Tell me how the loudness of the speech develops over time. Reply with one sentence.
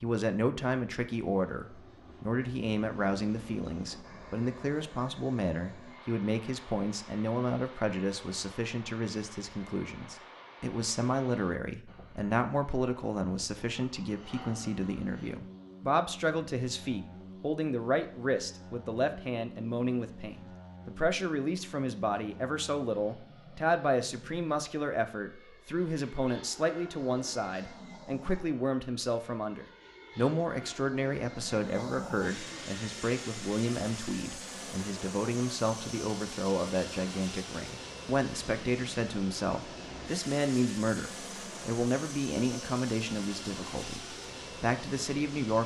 The loudness of the speech stays about the same.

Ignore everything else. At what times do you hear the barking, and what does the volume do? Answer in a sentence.
You can't hear the barking here.